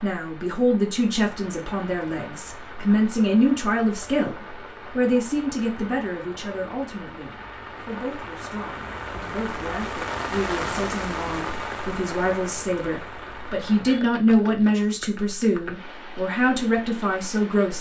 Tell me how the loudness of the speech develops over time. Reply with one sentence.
The volume of the speech goes down, then up.